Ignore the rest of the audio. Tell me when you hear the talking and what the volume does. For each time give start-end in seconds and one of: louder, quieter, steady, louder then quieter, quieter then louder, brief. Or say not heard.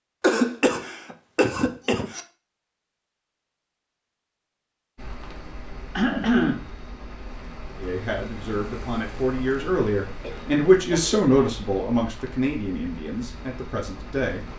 7.8-14.4 louder then quieter.